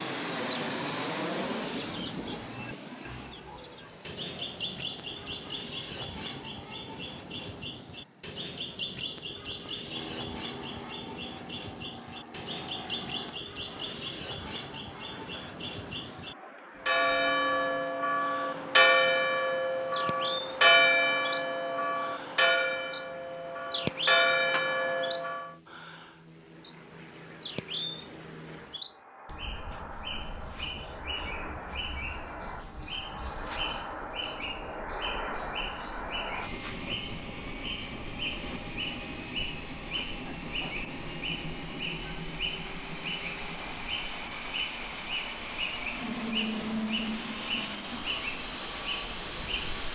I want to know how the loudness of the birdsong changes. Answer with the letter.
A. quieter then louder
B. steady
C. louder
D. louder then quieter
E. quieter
B.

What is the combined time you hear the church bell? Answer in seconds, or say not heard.
9 s.